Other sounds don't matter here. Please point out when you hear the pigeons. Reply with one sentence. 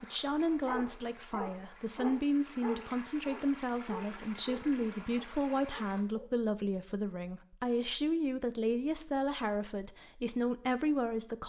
You can't hear the pigeons here.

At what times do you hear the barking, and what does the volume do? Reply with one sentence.
The barking can be heard from 0.7 to 6.3 s, getting quieter.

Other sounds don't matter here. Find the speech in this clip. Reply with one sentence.
The speech can be heard from 0.0 to 11.4 s.